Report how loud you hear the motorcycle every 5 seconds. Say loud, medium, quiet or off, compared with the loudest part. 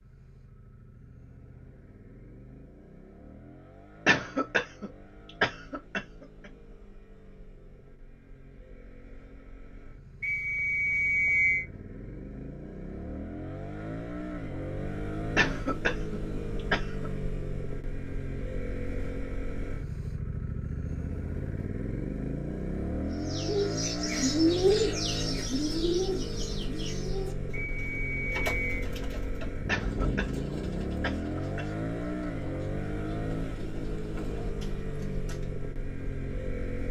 quiet, quiet, medium, loud, loud, loud, loud, loud.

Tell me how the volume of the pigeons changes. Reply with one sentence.
The loudness of the pigeons goes down.